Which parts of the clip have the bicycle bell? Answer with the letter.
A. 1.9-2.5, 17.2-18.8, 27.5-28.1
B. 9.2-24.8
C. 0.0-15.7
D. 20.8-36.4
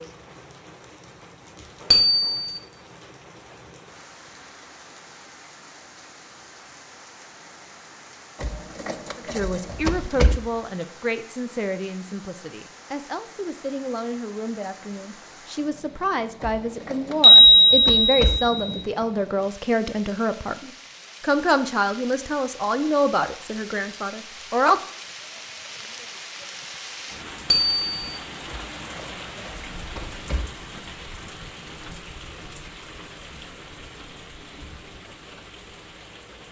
A.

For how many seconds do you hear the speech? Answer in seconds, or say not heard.
16 s.